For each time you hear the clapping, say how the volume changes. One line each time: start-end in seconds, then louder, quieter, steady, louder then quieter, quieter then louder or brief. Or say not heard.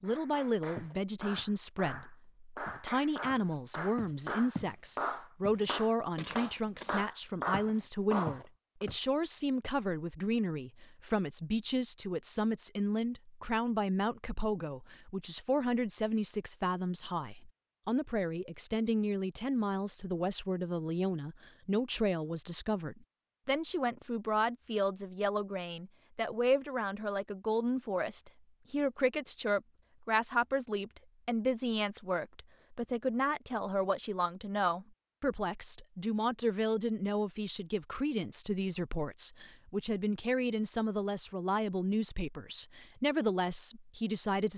0.0-8.8 louder.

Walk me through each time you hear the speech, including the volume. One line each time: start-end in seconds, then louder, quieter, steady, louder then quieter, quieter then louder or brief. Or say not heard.
0.0-44.5 steady.